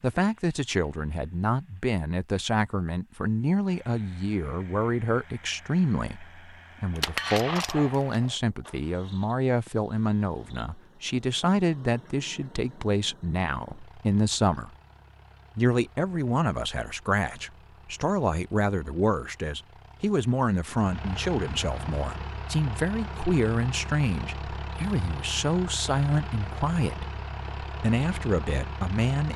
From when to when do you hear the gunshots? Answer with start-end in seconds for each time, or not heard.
7.0-8.3.